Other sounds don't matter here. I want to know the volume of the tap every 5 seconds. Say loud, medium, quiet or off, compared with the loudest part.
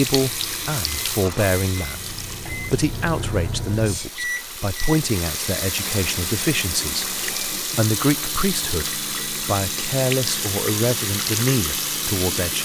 medium, loud, loud.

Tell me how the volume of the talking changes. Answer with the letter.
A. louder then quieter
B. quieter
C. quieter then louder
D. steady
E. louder
D.